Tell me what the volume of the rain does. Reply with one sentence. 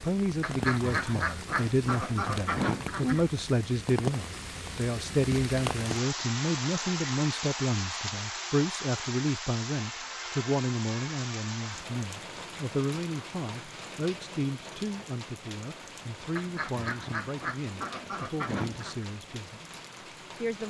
The loudness of the rain goes down.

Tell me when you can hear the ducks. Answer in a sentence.
You can hear the ducks from 0.4 to 3.3 s and from 16.4 to 19.1 s.